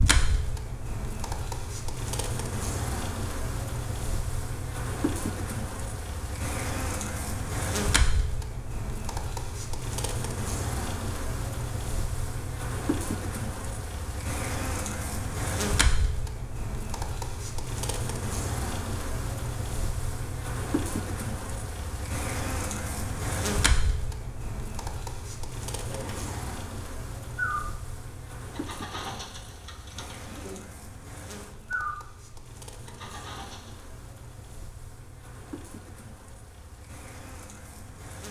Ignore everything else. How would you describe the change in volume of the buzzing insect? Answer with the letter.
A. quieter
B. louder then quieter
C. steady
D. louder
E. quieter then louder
A.